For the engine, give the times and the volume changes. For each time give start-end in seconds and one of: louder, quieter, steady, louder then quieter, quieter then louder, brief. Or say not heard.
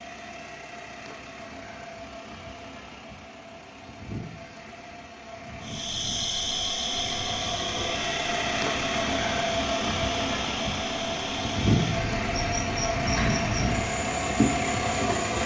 0.0-15.4 louder.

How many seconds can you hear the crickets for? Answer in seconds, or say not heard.
10 s.